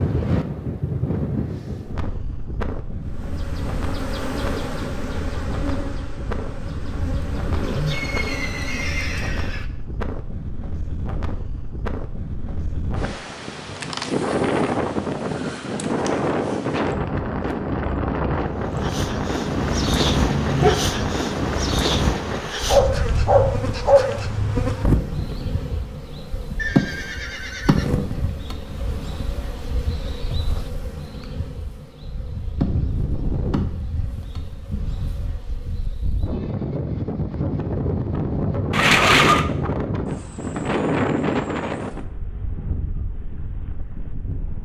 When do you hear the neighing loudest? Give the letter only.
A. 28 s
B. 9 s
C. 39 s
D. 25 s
C.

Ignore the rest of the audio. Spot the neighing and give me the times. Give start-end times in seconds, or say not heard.
7.9-9.7, 26.6-28.1, 38.7-39.5.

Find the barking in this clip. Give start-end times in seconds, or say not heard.
19.5-20.7, 22.6-24.1.